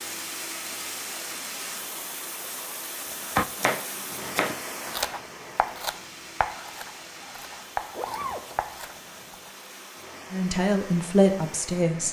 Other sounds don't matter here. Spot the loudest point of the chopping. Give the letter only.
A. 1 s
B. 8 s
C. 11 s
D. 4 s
D.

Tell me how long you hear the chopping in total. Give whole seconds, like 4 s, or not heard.
6 s.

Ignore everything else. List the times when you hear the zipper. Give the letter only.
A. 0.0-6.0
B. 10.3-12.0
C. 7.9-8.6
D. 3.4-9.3
C.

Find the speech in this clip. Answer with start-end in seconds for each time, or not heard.
10.3-12.0.